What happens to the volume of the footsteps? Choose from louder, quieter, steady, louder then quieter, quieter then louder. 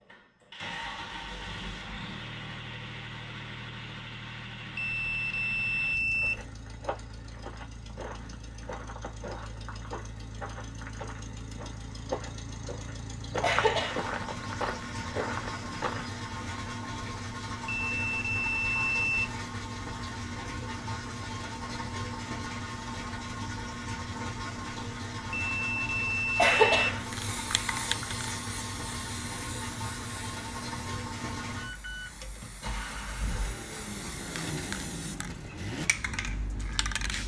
louder.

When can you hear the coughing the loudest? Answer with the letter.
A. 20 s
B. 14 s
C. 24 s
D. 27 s
D.